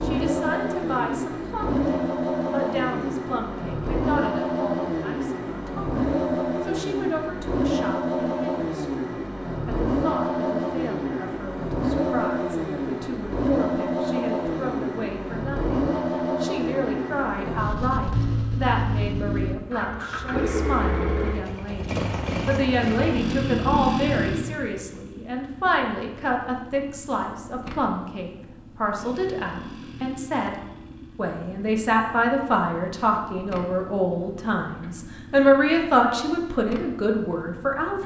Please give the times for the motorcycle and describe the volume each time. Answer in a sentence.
You can hear the motorcycle from 0.0 to 38.0 s, getting quieter.